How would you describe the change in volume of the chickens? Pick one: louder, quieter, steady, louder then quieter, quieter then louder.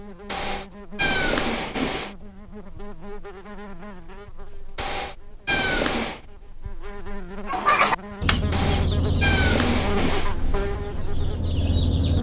quieter then louder.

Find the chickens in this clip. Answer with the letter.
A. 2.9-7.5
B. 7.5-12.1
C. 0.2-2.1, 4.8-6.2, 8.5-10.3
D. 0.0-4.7
B.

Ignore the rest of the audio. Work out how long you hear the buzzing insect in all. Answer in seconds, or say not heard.
12 s.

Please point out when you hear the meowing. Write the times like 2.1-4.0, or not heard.
0.2-2.1, 4.8-6.2, 8.5-10.3.